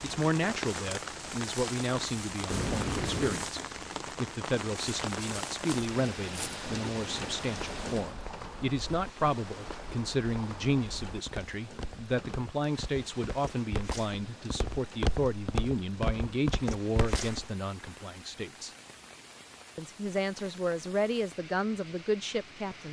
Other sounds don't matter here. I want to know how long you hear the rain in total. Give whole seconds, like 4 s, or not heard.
23 s.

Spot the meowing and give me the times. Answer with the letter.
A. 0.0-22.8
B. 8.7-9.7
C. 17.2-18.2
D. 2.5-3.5
D.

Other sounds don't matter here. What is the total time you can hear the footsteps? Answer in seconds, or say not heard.
12 s.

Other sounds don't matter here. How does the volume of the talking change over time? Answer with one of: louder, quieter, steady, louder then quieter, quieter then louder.
steady.